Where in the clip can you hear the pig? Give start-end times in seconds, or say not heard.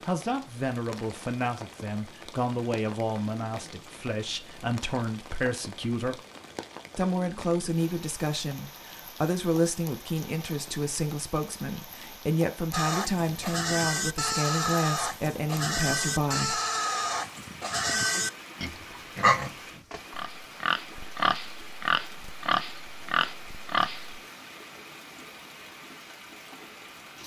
12.7-24.2.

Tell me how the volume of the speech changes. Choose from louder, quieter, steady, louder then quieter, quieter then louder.
steady.